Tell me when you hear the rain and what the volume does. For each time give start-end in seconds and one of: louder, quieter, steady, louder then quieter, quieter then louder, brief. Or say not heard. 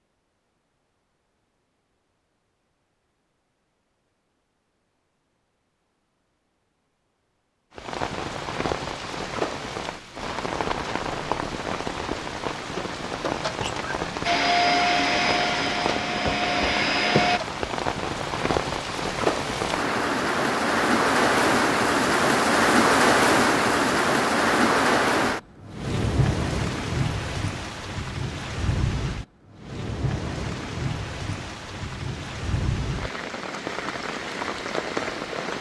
7.8-35.5 louder then quieter.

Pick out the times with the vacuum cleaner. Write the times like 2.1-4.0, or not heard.
14.2-17.4.